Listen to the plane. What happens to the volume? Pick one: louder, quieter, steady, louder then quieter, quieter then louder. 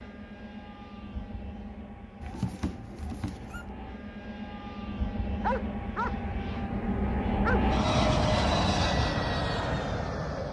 louder.